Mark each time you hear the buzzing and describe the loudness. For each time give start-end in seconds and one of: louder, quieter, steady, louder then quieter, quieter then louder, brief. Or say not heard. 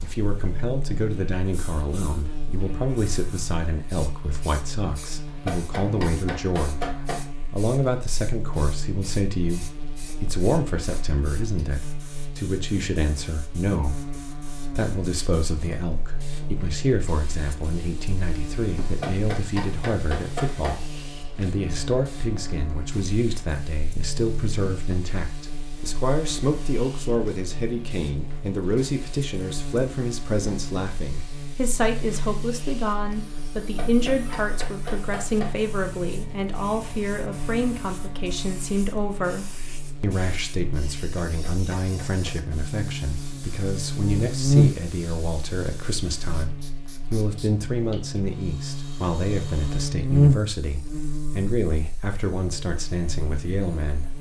0.0-54.1 louder.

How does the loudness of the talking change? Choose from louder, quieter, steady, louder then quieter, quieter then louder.
steady.